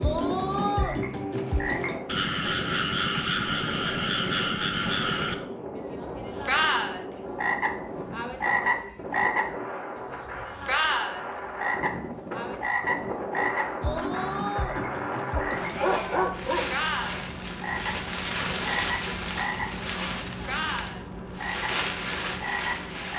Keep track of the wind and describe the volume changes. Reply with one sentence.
The volume of the wind goes up.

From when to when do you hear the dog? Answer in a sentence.
The dog can be heard from 15.3 to 16.9 s.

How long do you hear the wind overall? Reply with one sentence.
The wind can be heard for 23 seconds in total.